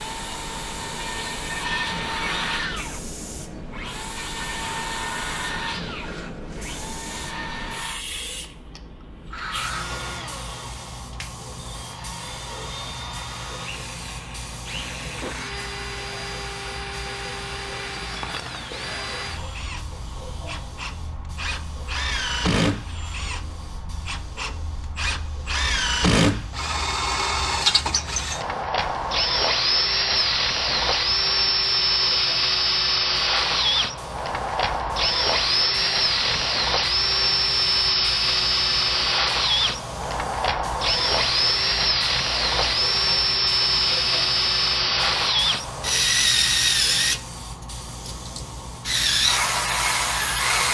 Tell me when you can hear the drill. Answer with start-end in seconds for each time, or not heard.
0.0-50.6.